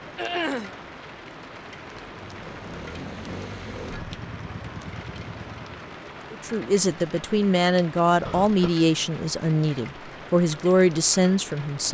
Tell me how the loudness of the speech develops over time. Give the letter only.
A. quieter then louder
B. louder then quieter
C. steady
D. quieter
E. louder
C.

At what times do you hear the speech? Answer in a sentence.
You can hear the speech from 6.3 to 11.8 s.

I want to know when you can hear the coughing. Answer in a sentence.
The coughing can be heard from 0.1 to 0.8 s and from 8.2 to 8.8 s.